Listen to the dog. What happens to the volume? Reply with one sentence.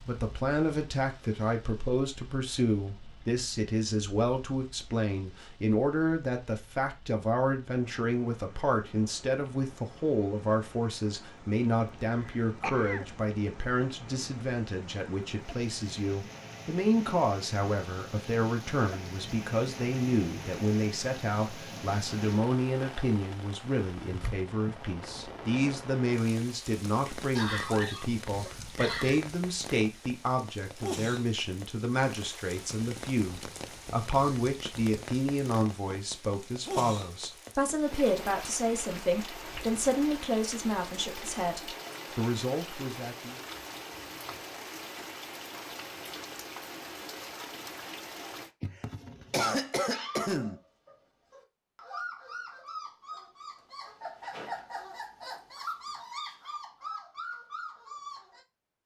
The volume of the dog goes up.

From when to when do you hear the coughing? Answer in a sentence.
You can hear the coughing from 12.2 to 13.1 s, from 27.4 to 29.2 s and from 48.6 to 50.6 s.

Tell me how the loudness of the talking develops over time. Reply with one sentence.
The loudness of the talking stays about the same.